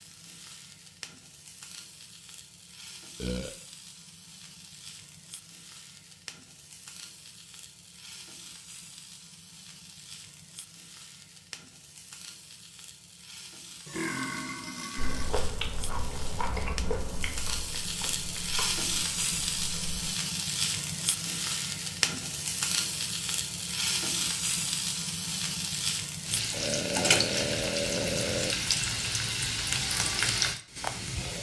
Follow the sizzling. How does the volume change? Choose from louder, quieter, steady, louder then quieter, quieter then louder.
louder.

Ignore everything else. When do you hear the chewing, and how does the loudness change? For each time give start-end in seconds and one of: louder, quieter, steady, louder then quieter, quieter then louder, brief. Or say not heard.
14.9-20.1 quieter.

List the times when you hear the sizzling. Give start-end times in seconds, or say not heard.
0.0-31.3.